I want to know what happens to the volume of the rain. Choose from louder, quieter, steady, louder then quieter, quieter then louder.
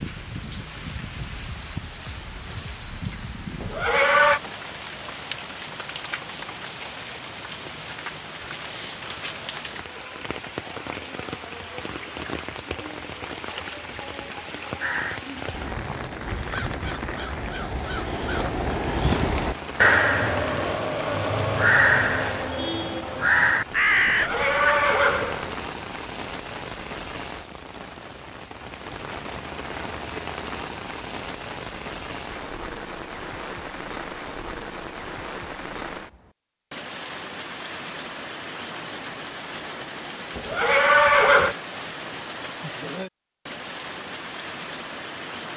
steady.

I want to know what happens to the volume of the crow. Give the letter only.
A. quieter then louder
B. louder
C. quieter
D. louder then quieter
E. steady
B.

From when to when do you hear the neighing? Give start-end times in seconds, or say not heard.
3.6-4.4, 24.1-25.6, 40.4-41.5.